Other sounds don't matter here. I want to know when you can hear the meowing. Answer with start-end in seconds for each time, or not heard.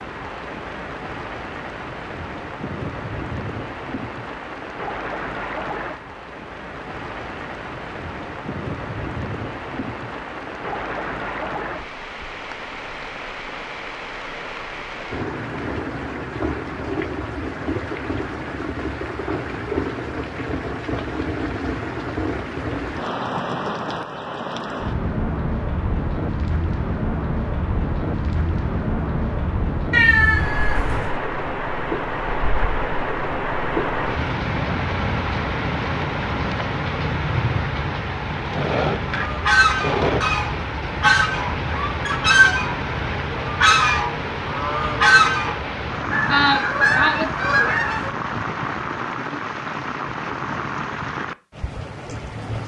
29.9-31.1.